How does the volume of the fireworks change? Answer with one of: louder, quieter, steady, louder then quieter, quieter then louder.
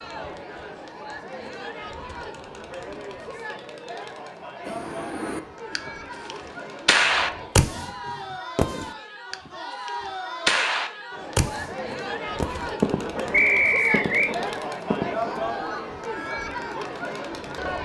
quieter.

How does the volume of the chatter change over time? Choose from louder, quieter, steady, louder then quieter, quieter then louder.
louder.